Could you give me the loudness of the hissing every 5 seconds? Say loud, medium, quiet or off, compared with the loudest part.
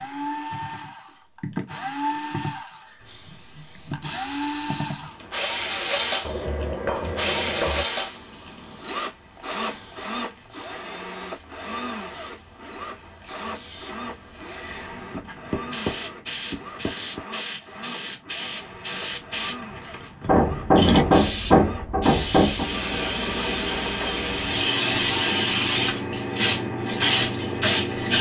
quiet, quiet, quiet, medium, loud, loud.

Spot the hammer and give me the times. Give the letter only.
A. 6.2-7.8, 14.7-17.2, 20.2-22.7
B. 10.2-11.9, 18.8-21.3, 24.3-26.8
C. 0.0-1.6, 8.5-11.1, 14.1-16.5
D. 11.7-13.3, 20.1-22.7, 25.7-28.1
A.